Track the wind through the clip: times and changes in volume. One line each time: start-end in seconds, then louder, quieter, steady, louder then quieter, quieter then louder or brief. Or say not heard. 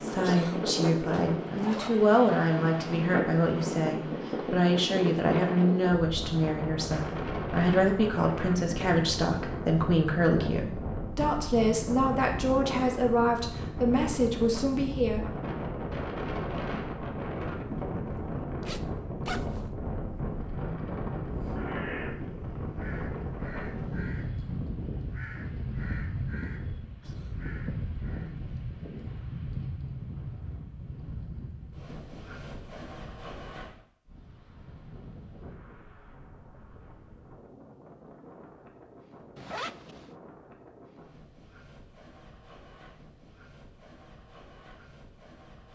0.0-45.7 quieter.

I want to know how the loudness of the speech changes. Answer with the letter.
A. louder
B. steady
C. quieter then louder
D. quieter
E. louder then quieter
B.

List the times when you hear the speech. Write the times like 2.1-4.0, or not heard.
0.0-15.2.